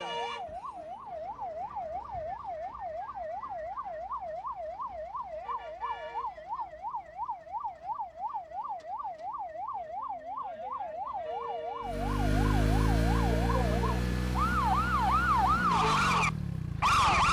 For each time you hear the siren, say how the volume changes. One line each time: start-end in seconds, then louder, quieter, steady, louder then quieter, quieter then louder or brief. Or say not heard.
0.0-17.2 louder.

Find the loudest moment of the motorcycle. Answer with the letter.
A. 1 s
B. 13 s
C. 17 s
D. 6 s
B.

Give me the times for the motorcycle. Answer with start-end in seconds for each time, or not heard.
11.8-17.2.